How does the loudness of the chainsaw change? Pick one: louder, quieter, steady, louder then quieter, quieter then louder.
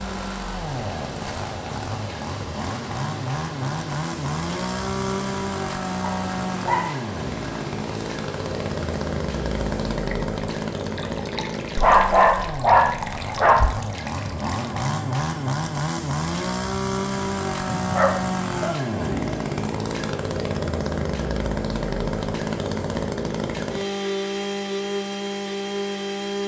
steady.